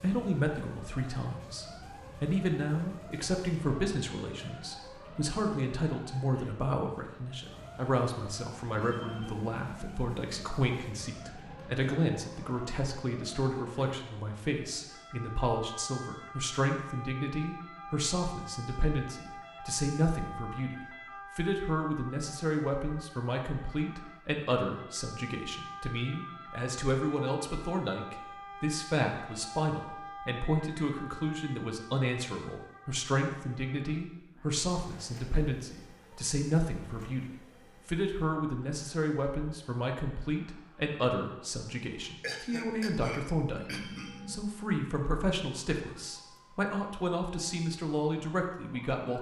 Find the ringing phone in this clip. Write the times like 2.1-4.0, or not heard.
8.7-10.6, 43.5-44.5.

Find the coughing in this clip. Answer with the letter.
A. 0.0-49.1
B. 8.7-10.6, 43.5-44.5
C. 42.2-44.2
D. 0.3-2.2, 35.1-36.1
C.